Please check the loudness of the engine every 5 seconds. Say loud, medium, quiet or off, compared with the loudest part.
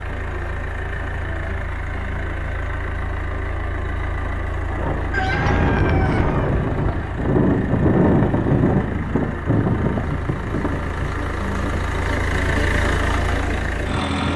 medium, medium, loud.